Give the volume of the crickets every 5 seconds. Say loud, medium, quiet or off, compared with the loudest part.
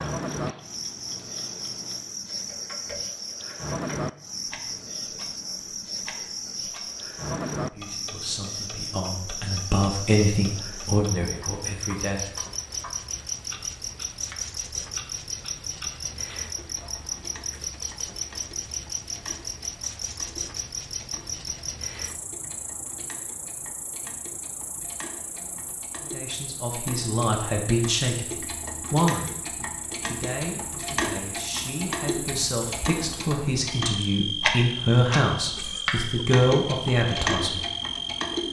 loud, loud, loud, loud, loud, medium, loud, loud.